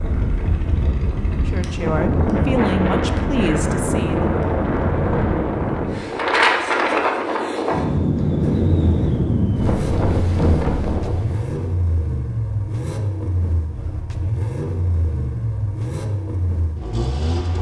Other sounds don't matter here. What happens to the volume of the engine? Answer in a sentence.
The loudness of the engine stays about the same.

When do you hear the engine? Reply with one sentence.
You can hear the engine from 8.4 to 17.5 s.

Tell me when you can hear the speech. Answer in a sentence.
You can hear the speech from 1.4 to 4.3 s.